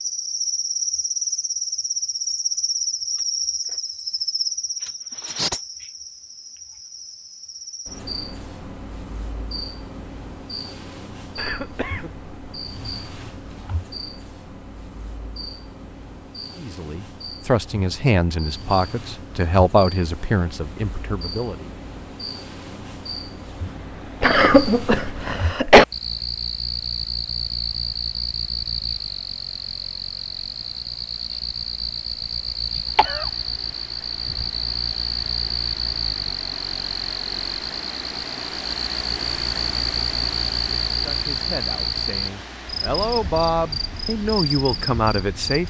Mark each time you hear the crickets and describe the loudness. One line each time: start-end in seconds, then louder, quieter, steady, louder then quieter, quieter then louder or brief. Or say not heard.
0.0-45.6 quieter then louder.